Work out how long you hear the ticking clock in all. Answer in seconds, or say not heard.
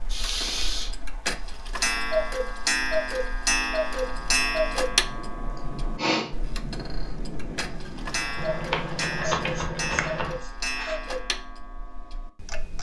13 s.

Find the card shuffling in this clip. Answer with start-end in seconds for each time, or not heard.
8.3-10.3.